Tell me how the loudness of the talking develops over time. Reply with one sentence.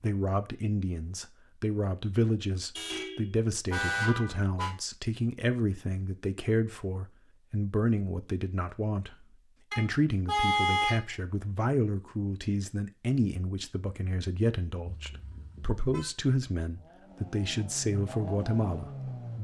The loudness of the talking stays about the same.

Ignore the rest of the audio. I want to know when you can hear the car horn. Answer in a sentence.
The car horn can be heard from 2.8 to 4.8 s, from 9.7 to 11.1 s and from 14.8 to 16.1 s.